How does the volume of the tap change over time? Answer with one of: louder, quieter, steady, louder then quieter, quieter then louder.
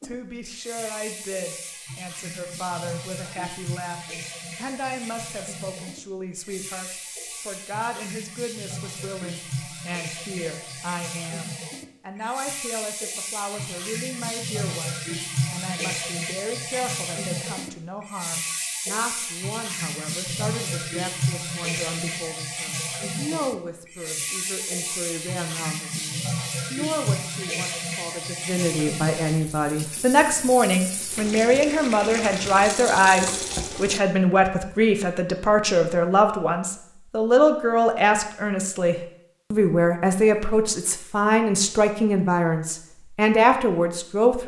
louder.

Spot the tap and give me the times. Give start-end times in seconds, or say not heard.
0.0-34.0.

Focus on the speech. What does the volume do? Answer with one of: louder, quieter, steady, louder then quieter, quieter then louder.
louder.